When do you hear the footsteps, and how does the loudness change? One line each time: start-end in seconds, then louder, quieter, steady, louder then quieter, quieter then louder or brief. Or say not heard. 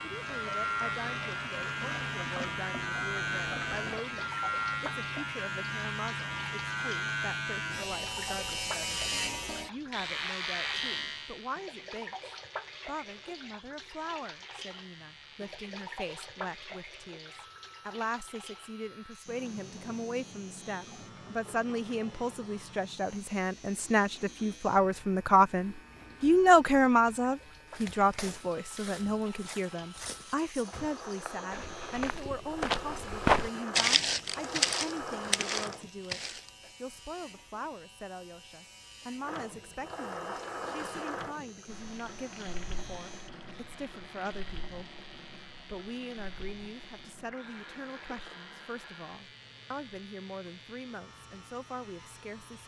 27.6-36.7 louder then quieter.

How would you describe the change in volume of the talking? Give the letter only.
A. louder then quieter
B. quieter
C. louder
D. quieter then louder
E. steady
A.